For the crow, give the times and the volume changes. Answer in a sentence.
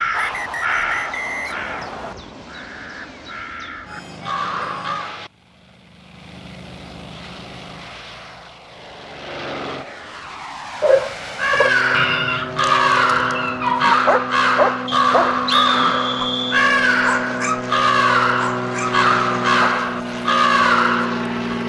The crow can be heard from 0.0 to 5.2 s, getting quieter then louder; and from 11.3 to 21.6 s, at a steady volume.